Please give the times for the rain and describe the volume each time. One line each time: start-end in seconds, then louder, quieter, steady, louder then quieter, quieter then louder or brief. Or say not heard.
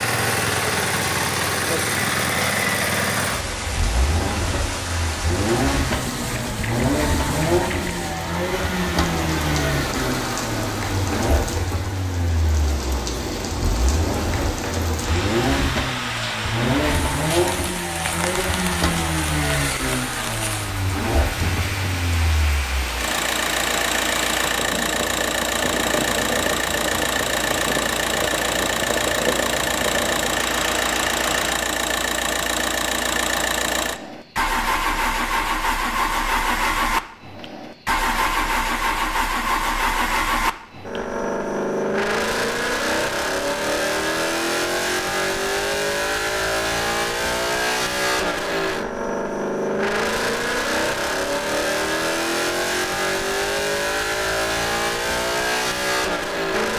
0.0-31.6 steady.